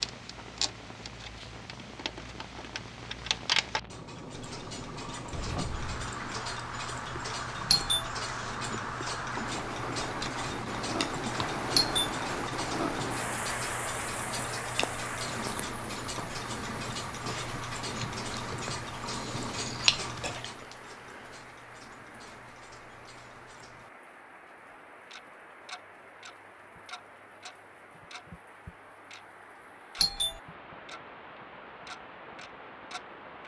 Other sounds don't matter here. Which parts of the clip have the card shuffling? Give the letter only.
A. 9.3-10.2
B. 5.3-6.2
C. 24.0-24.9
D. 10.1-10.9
B.